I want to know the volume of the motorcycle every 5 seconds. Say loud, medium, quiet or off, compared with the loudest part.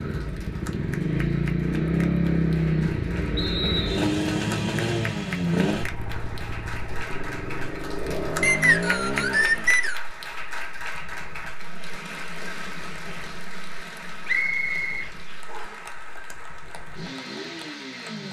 loud, medium, quiet, quiet.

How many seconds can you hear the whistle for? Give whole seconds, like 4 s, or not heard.
4 s.